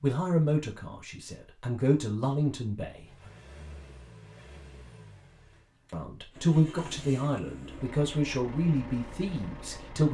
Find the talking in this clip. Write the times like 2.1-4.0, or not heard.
0.0-3.3, 5.9-10.1.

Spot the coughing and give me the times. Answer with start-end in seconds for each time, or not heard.
not heard.